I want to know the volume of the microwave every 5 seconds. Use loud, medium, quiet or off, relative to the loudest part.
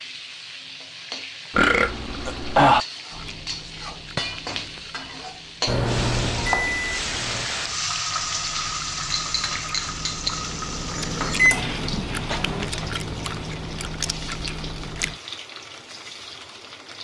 off, loud, loud, off.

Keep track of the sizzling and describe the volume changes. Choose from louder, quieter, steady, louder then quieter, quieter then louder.
louder then quieter.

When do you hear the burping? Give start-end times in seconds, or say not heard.
1.5-2.9.